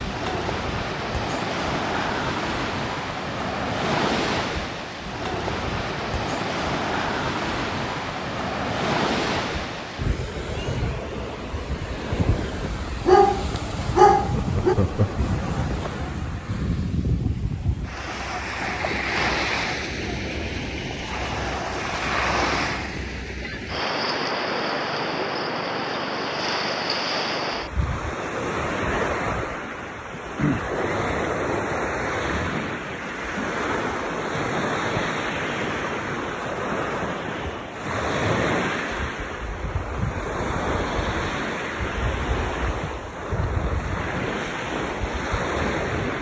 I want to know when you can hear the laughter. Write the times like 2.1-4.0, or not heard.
14.3-15.2.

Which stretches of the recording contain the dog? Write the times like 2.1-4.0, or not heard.
13.1-14.8.